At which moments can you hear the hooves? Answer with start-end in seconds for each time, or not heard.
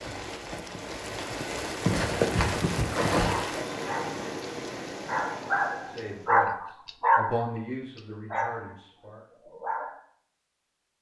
0.0-3.4.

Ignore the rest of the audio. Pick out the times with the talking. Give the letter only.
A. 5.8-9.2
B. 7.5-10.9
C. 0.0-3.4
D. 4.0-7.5
A.